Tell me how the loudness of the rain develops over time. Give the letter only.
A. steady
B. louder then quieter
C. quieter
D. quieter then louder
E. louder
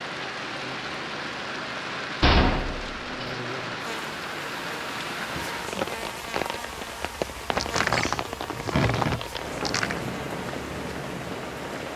A.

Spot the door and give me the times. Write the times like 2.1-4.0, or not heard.
2.2-3.4, 7.5-10.0.